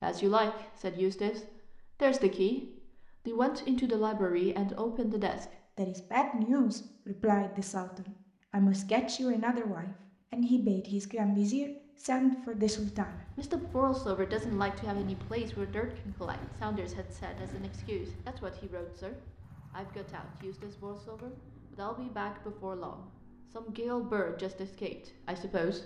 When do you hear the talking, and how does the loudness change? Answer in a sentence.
You can hear the talking from 0.0 to 25.8 s, getting quieter.